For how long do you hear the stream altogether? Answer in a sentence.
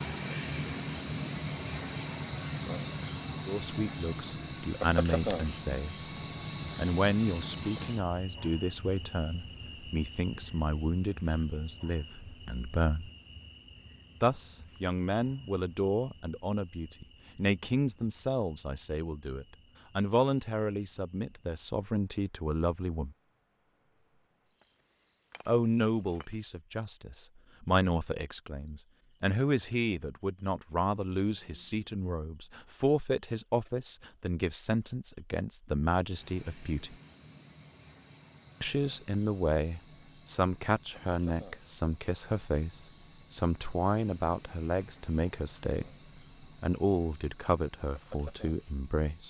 You can't hear the stream here.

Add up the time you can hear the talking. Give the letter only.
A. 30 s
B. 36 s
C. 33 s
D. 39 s
D.